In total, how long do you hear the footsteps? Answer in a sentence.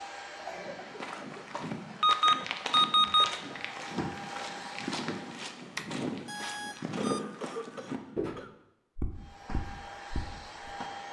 You can hear the footsteps for 10 seconds altogether.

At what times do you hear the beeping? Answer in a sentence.
You can hear the beeping from 2.0 to 3.3 s and from 5.8 to 7.2 s.